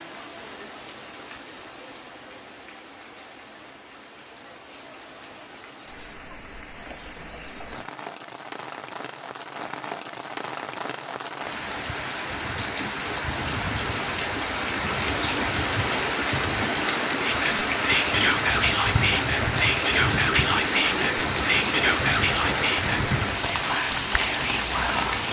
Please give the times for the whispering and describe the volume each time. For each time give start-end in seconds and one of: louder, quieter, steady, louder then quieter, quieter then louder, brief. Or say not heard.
17.2-25.2 steady.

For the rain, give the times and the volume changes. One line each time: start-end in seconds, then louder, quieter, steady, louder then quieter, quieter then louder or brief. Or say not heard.
0.0-25.2 louder.